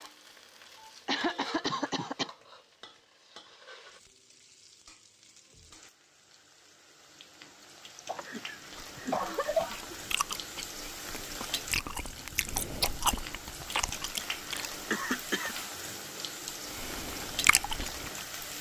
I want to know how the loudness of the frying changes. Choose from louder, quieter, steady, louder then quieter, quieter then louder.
quieter then louder.